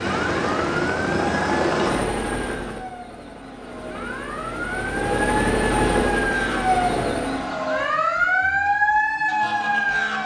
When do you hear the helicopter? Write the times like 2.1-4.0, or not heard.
0.0-7.5.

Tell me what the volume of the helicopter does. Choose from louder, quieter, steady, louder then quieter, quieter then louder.
quieter then louder.